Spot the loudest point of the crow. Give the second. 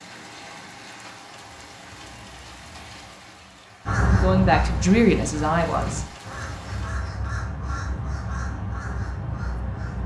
4 s.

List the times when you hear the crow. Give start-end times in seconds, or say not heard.
3.9-10.0.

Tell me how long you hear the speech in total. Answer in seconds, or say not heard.
2 s.